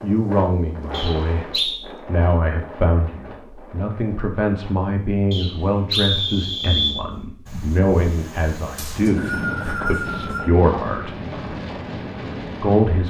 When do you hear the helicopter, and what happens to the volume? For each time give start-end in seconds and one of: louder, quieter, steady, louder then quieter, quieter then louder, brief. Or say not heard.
not heard.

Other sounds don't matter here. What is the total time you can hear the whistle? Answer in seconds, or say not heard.
4 s.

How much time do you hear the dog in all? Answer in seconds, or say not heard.
not heard.